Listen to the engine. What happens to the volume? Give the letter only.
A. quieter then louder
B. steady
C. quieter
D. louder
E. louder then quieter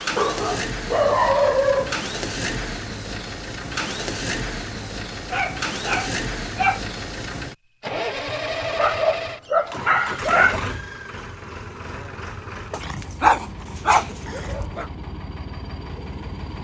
C.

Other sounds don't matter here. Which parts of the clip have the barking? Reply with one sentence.
The barking can be heard from 0.1 to 1.9 s, from 5.3 to 6.8 s, from 8.7 to 10.6 s and from 12.7 to 14.8 s.